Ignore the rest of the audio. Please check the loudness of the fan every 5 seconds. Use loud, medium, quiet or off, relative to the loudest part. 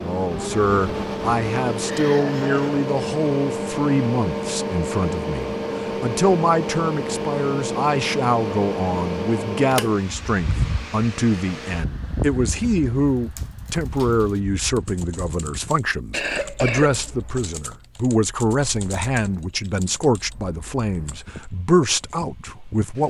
loud, loud, medium, quiet, quiet.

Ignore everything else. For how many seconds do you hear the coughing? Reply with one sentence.
You can hear the coughing for 2 seconds altogether.